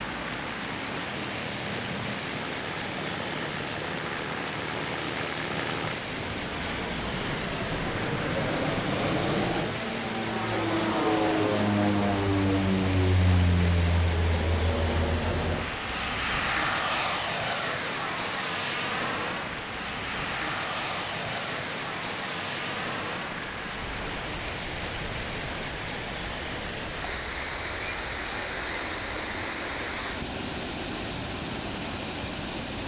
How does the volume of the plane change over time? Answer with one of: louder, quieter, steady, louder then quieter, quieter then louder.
louder then quieter.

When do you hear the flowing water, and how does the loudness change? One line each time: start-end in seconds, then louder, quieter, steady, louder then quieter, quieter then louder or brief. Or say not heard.
0.0-32.8 steady.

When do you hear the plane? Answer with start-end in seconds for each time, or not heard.
0.0-32.8.